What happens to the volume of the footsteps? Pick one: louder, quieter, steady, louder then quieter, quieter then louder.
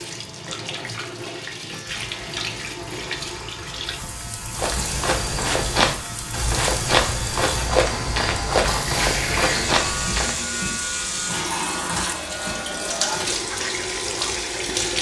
steady.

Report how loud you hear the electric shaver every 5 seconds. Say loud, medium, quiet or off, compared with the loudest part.
medium, loud, loud.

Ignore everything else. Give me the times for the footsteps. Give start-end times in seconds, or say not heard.
4.5-10.4.